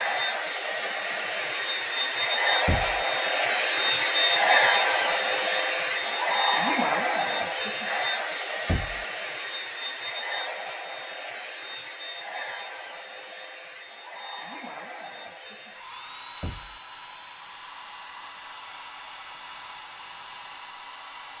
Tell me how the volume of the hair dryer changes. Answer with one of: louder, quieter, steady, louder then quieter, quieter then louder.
quieter.